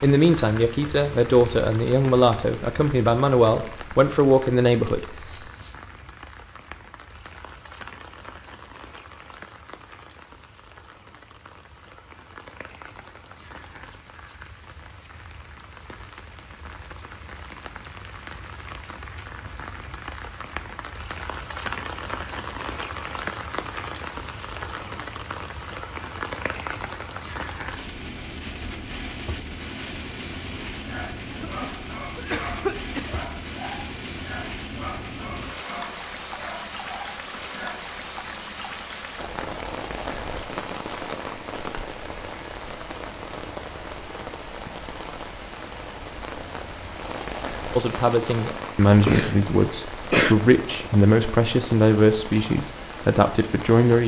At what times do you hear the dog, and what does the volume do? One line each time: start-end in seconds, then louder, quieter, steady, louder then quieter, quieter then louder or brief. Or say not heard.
30.9-37.8 steady.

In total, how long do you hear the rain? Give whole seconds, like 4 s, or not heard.
54 s.